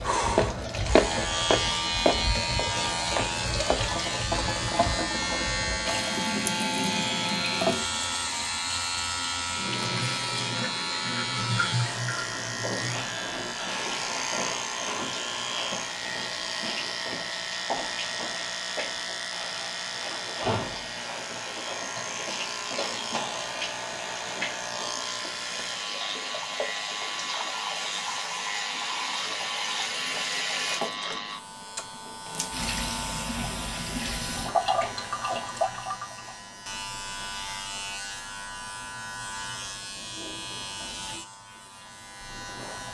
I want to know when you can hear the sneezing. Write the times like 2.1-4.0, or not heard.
not heard.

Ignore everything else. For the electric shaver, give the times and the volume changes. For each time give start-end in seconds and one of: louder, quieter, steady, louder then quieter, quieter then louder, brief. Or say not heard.
0.0-42.8 quieter.